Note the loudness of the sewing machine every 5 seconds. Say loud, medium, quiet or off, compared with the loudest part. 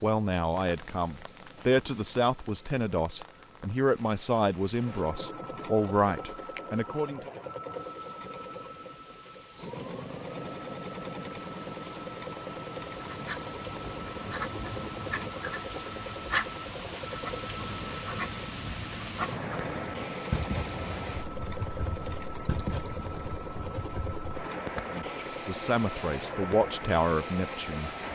quiet, loud, loud, loud, loud, loud.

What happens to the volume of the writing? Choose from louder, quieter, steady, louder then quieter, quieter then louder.
steady.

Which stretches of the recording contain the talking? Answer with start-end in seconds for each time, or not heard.
0.0-7.3, 24.8-28.1.